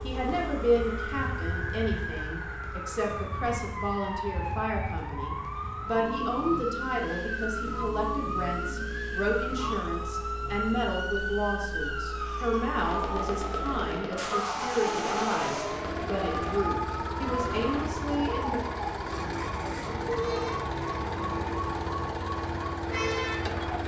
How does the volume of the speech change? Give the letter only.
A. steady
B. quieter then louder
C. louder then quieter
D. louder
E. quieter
A.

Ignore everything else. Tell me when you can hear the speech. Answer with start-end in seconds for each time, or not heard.
0.0-18.6.